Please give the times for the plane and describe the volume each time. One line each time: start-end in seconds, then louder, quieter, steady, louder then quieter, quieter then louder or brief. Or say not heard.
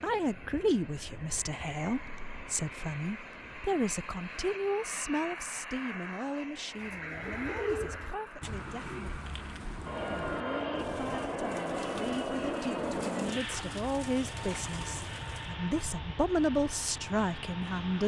0.0-18.0 louder then quieter.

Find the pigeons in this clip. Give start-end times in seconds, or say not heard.
6.7-15.5.